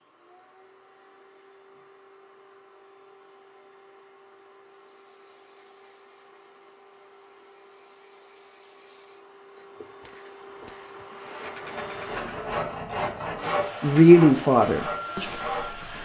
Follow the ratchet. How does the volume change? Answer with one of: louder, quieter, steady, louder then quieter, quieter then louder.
louder.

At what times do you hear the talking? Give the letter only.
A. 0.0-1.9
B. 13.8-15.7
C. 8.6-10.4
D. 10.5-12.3
B.